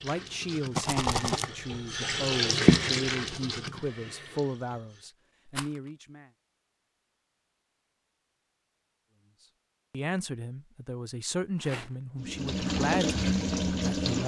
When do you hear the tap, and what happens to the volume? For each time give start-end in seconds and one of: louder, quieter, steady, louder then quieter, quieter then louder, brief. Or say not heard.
0.0-5.1 louder then quieter
12.2-14.2 brief.